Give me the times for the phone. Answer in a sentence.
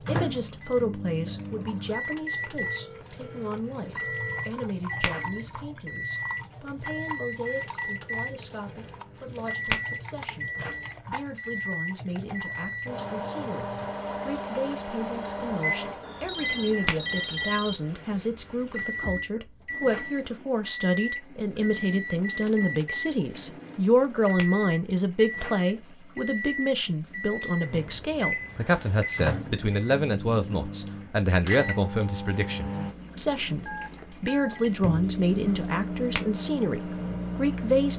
The phone can be heard from 2.6 to 4.6 s, from 16.0 to 17.8 s and from 33.6 to 34.6 s.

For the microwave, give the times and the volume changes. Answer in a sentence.
You can hear the microwave from 0.0 to 37.9 s, at a steady volume.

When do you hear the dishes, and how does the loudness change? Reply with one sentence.
The dishes can't be heard in this clip.